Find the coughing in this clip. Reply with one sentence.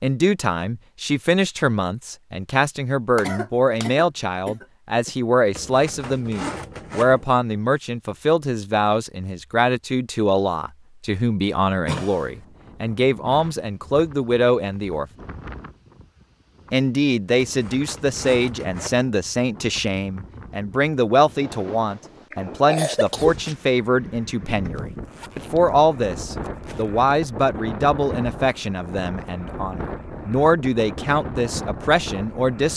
You can hear the coughing from 3.1 to 5.1 s, from 11.8 to 12.3 s and from 22.3 to 23.6 s.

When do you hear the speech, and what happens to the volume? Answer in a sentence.
The speech can be heard from 0.0 to 15.1 s, at a steady volume; and from 16.7 to 32.7 s, at a steady volume.